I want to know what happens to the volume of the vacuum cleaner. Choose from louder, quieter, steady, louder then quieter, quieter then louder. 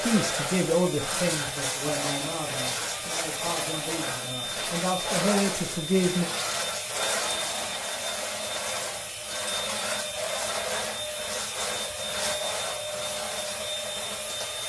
steady.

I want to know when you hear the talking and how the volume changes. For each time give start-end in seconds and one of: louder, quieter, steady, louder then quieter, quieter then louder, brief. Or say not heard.
0.0-6.2 quieter then louder.